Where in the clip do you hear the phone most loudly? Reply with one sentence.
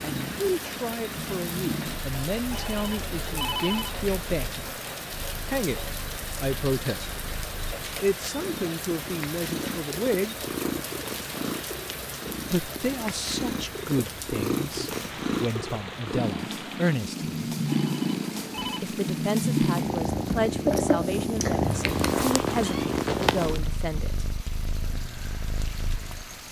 The volume of the phone peaks at 4 seconds.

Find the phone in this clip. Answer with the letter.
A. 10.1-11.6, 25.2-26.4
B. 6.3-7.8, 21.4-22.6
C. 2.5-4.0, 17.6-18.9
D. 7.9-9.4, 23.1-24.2
C.